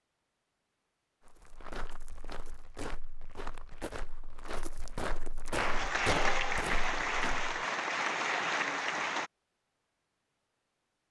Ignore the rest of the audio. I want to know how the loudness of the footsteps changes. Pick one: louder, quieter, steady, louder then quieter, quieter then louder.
louder.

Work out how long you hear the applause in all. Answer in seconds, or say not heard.
4 s.